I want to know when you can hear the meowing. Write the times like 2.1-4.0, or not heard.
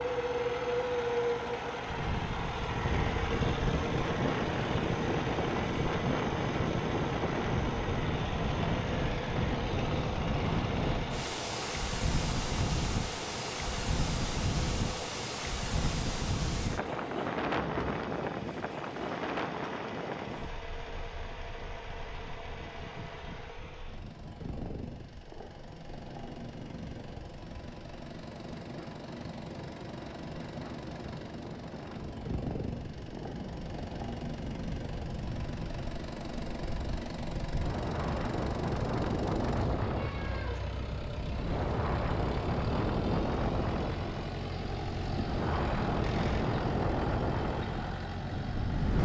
39.8-40.8.